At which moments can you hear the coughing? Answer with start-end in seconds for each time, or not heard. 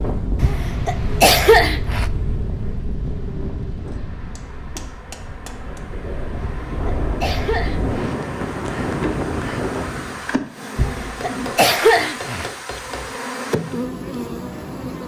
0.4-2.0, 6.5-8.2, 10.8-12.5.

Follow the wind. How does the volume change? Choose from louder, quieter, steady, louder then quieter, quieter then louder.
quieter then louder.